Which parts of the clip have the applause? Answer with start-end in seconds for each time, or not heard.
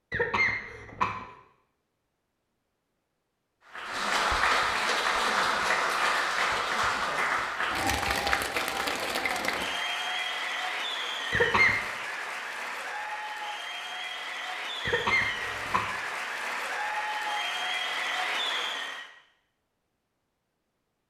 3.7-19.1.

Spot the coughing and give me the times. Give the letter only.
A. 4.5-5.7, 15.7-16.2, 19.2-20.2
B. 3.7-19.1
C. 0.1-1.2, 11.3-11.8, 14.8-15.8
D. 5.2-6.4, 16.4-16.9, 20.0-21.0
C.